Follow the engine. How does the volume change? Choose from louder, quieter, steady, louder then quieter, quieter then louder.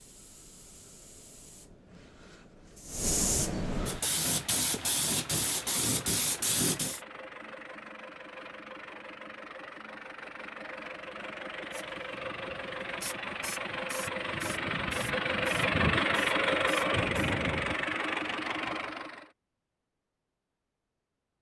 louder.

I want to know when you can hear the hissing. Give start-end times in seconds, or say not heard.
0.0-7.0, 11.7-17.4.